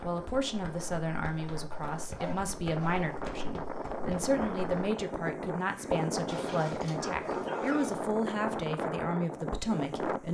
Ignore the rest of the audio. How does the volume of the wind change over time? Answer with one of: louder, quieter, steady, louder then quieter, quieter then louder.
louder.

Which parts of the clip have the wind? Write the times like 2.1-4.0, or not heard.
0.0-10.2.